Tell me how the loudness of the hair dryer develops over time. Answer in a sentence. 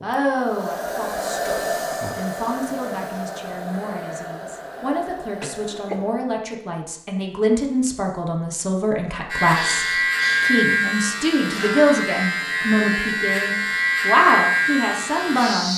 The loudness of the hair dryer goes down.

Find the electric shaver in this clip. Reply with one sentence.
The electric shaver can be heard from 9.2 to 15.7 s.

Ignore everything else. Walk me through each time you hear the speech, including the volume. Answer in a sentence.
You can hear the speech from 0.0 to 15.7 s, getting louder.